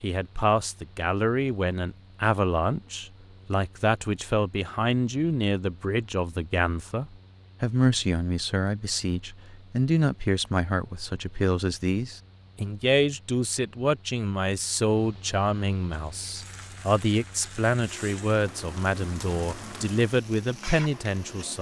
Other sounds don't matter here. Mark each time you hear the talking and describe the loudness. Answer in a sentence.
The talking can be heard from 0.0 to 21.5 s, at a steady volume.